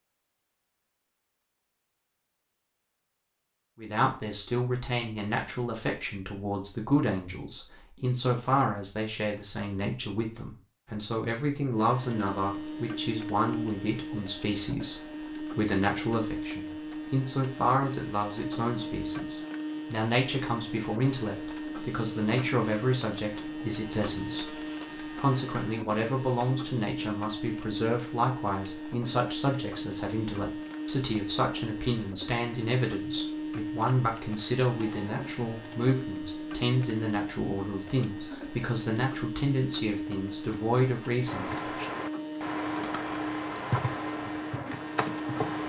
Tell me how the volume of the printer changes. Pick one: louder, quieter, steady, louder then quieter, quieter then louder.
steady.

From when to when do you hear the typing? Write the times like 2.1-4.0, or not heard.
41.2-45.6.